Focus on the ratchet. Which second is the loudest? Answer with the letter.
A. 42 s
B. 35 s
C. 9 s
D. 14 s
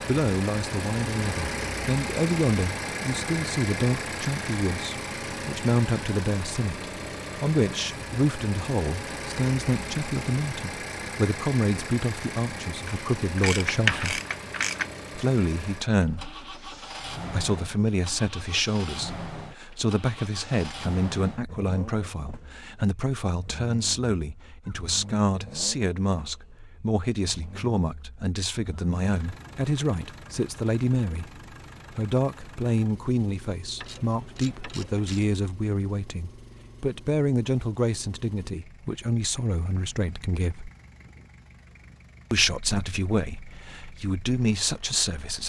D.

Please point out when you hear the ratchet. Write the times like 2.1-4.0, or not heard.
12.8-14.8, 33.8-35.4.